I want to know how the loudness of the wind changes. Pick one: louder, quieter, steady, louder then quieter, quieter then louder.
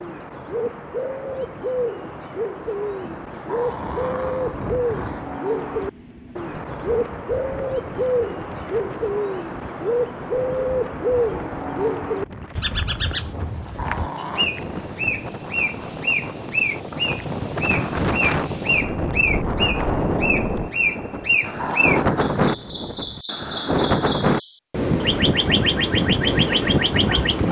louder.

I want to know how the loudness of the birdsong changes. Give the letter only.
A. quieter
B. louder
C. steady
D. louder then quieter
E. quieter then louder
C.